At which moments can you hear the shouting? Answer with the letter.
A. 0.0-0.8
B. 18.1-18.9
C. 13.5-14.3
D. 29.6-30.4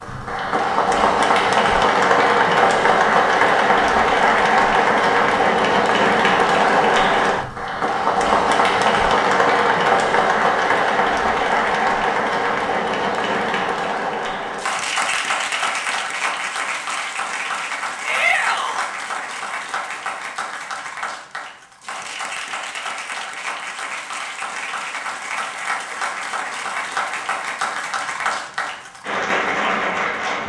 B.